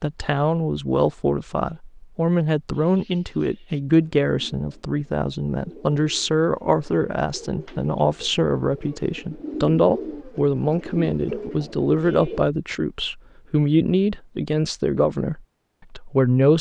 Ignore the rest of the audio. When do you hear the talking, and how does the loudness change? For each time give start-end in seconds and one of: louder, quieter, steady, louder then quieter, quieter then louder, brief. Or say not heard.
0.0-16.5 steady.